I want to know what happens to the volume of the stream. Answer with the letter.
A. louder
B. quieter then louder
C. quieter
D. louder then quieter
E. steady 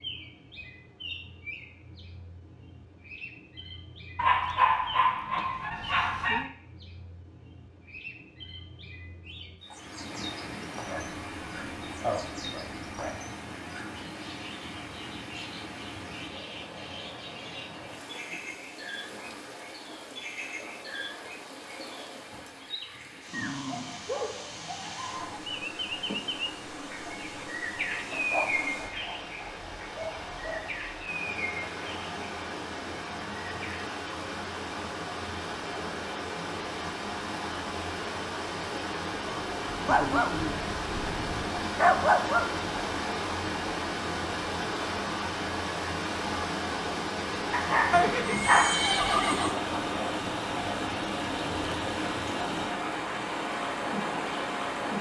A.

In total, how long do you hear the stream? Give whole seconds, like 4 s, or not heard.
45 s.